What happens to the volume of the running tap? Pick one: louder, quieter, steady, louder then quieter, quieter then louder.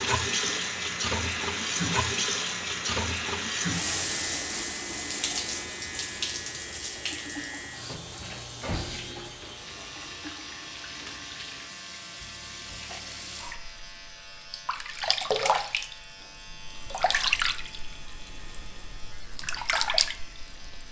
quieter then louder.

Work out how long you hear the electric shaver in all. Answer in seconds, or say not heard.
21 s.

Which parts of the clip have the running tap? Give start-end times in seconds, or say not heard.
0.0-20.8.